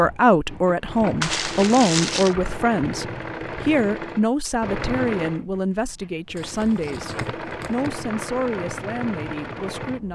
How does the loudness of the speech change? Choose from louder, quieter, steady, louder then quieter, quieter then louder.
quieter.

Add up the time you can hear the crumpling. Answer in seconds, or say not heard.
3 s.